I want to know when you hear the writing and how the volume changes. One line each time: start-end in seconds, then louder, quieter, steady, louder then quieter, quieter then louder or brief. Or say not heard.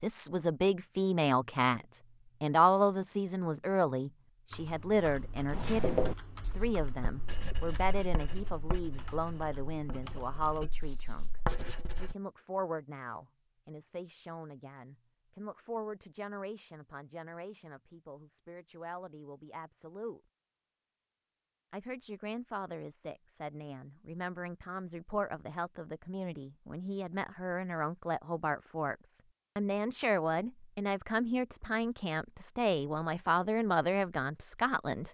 5.5-12.2 quieter then louder.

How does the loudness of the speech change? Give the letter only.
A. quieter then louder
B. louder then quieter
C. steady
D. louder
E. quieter
A.